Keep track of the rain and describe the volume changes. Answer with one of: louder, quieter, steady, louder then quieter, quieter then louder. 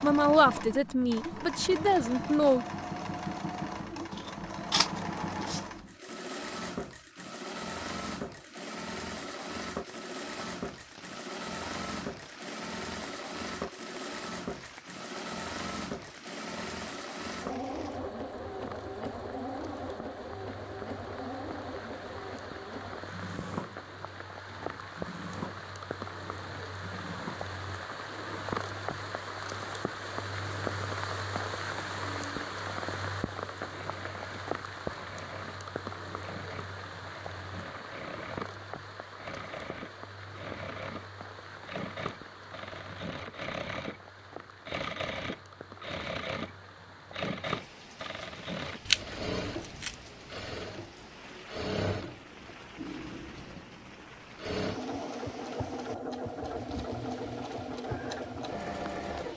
louder then quieter.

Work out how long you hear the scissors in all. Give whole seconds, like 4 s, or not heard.
3 s.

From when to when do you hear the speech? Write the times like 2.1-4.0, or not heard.
0.0-2.6.